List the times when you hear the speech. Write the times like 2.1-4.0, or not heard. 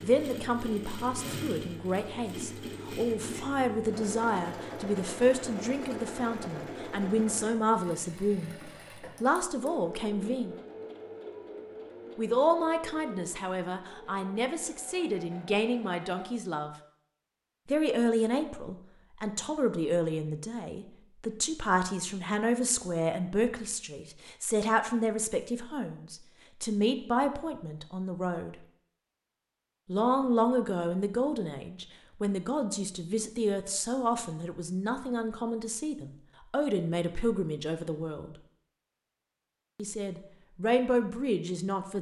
0.0-8.6, 9.2-10.6, 12.2-16.7, 17.6-28.6, 29.9-38.3, 39.8-41.9.